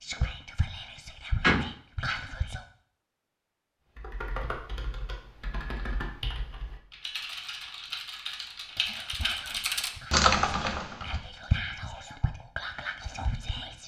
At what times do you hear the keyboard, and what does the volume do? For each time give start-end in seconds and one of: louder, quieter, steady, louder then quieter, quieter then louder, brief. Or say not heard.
4.0-11.2 louder.